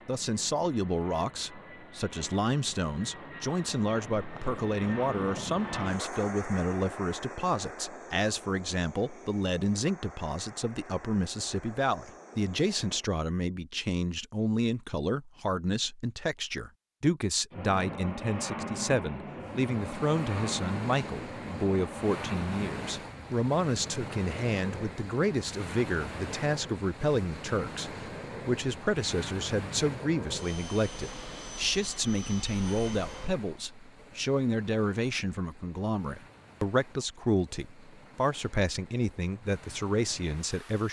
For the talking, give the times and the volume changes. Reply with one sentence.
The talking can be heard from 0.1 to 40.8 s, at a steady volume.